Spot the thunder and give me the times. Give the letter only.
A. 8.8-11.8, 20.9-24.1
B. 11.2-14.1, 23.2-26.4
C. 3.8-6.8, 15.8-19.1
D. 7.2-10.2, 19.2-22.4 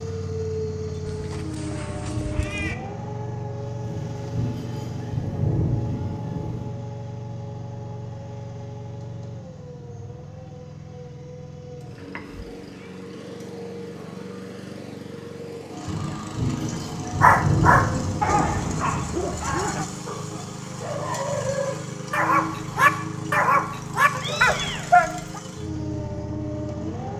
C.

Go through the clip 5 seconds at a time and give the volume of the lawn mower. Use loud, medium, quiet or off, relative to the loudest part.
loud, loud, medium, loud, loud, loud.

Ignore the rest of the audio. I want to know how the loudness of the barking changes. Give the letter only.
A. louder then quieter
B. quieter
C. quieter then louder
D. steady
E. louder
C.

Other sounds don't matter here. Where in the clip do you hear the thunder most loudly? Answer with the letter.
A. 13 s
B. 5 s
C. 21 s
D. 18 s
D.